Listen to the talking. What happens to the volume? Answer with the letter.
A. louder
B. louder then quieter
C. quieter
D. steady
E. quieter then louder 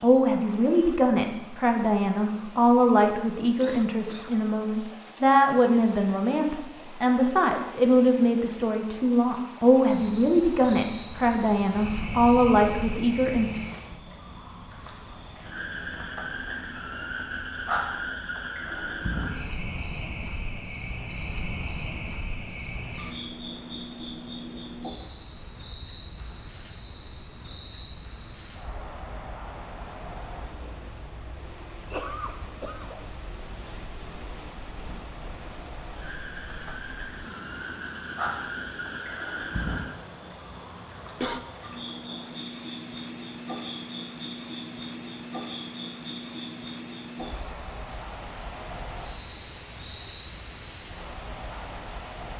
D.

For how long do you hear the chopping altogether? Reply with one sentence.
You can't hear the chopping here.